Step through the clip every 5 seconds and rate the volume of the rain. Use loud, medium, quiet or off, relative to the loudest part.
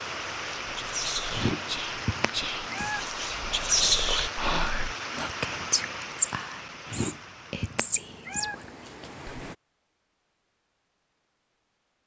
loud, medium, off.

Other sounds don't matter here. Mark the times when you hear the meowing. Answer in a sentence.
You can hear the meowing from 1.3 to 3.0 s and from 6.8 to 8.6 s.